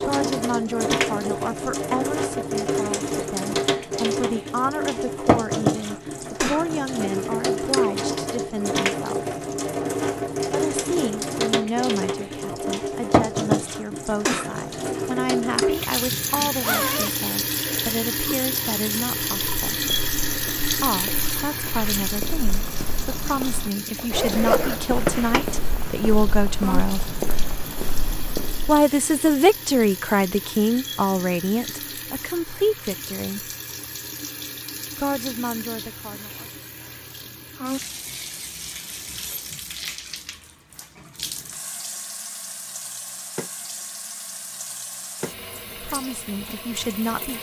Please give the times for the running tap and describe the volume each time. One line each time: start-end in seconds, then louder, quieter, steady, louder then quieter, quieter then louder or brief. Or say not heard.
0.0-47.3 quieter.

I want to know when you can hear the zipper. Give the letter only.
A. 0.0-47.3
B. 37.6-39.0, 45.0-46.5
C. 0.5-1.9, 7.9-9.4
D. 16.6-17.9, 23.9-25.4
D.